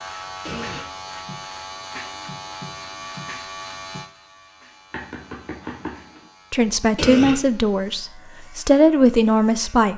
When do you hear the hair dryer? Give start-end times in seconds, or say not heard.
not heard.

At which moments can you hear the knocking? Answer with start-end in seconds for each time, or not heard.
4.9-6.2.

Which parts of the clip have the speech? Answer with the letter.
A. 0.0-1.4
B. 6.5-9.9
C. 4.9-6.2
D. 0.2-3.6
B.